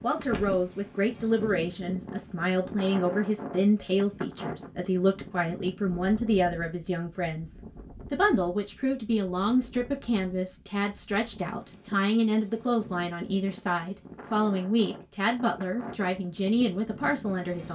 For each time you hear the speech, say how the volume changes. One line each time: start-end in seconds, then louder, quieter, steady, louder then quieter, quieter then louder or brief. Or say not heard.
0.0-17.6 steady.